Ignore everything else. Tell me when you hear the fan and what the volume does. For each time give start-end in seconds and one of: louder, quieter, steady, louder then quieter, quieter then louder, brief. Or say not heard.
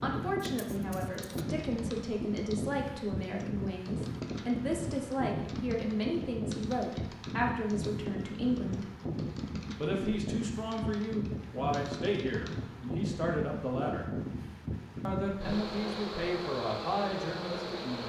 0.0-18.0 steady.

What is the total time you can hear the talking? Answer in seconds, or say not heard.
16 s.